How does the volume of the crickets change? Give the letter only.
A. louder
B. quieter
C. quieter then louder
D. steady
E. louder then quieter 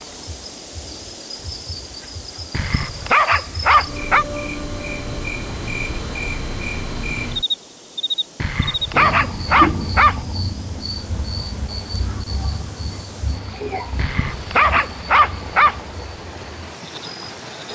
E.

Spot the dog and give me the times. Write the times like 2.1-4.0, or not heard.
2.5-4.2, 8.4-10.2, 13.9-15.8.